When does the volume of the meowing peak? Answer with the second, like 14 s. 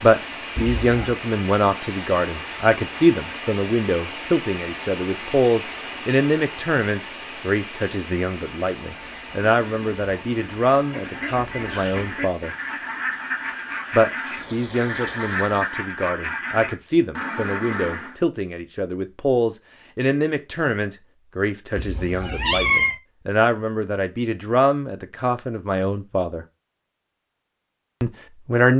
23 s.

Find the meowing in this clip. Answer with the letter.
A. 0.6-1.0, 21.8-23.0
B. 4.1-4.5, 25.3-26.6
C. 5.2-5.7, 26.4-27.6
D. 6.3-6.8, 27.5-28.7
A.